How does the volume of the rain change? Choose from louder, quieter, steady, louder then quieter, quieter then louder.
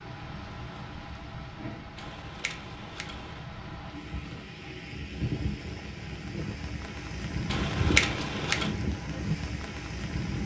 louder.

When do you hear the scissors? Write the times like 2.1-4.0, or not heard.
1.9-3.4, 7.5-8.7.